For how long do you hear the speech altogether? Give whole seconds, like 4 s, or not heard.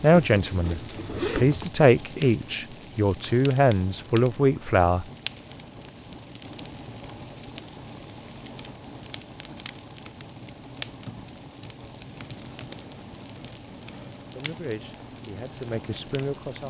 7 s.